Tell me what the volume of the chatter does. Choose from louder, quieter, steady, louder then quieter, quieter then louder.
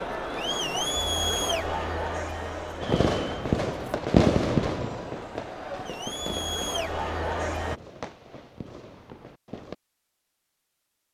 quieter then louder.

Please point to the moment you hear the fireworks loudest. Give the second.
4 s.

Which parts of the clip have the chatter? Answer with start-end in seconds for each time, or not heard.
0.0-7.8.